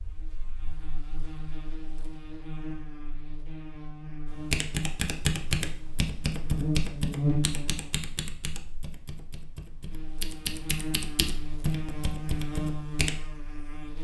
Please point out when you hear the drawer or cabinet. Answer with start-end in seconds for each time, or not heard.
not heard.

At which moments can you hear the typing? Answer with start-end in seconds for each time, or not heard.
4.2-13.2.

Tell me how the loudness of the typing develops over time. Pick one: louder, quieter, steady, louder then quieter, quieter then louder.
quieter then louder.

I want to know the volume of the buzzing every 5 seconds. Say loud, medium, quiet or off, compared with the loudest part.
medium, loud, medium.